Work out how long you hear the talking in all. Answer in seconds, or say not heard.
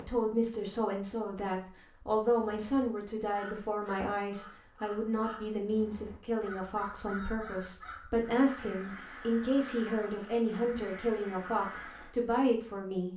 13 s.